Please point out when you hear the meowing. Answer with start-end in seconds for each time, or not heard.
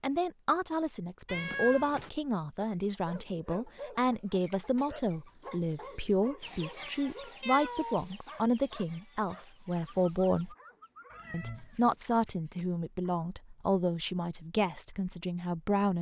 1.2-2.1, 7.4-8.1, 11.1-12.0.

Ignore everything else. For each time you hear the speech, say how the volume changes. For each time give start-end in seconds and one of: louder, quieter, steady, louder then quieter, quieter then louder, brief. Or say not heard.
0.0-10.6 steady
11.3-15.9 quieter.